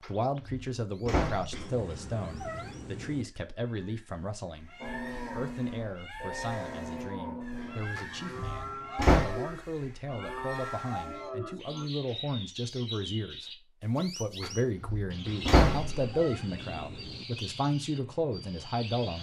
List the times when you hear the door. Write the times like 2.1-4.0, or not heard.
0.1-1.6, 8.0-9.4, 14.4-16.1.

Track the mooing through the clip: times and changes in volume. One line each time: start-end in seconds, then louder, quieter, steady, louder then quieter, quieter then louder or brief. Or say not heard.
4.8-11.9 steady.